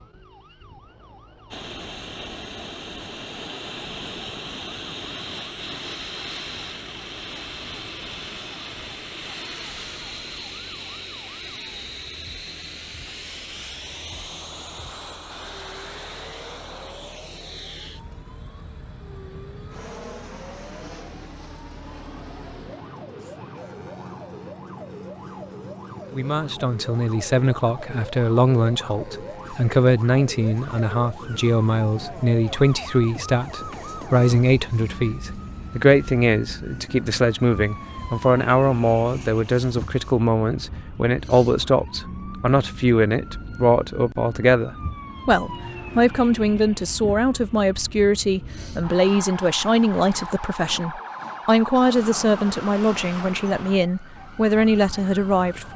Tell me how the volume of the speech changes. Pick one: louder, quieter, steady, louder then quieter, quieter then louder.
steady.